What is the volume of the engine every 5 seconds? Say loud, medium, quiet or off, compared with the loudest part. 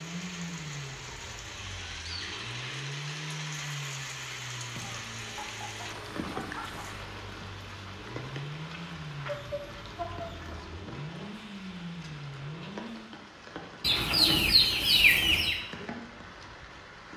loud, loud, loud, off.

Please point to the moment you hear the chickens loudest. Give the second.
15 s.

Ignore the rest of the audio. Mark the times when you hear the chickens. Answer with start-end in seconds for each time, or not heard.
1.1-2.5, 4.7-7.0, 9.2-10.6, 13.8-15.6.